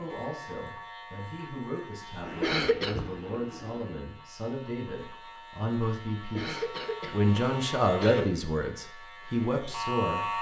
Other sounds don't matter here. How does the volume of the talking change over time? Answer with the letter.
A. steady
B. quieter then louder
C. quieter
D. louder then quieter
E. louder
E.